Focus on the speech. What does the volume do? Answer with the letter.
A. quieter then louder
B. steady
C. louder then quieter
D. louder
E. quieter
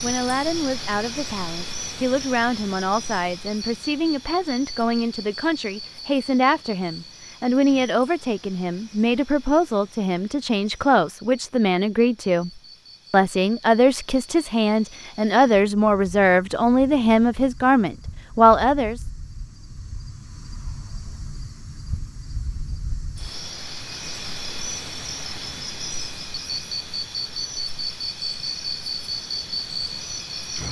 D.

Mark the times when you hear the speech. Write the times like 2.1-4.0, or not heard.
0.0-12.5, 13.1-19.0.